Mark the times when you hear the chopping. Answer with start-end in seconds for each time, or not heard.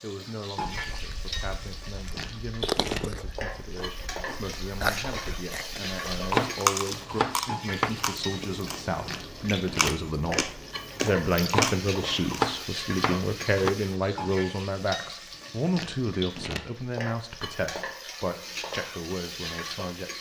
6.3-7.9, 11.5-13.8.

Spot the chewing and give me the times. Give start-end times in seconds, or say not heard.
0.8-12.3.